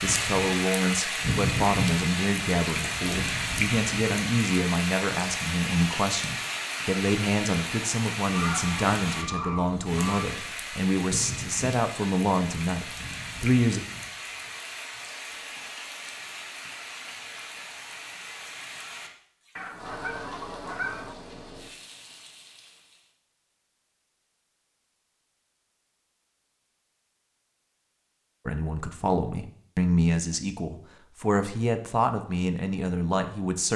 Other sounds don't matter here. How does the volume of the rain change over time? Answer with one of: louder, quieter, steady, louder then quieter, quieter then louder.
quieter.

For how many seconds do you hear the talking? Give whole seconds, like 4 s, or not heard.
19 s.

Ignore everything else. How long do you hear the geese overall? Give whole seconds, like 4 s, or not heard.
4 s.